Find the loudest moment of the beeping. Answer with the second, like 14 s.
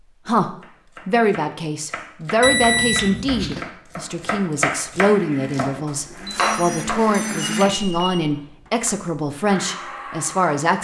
3 s.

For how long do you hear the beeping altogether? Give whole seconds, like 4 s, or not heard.
3 s.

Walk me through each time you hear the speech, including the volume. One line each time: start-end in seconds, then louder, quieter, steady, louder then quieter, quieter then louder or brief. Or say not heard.
0.2-10.8 steady.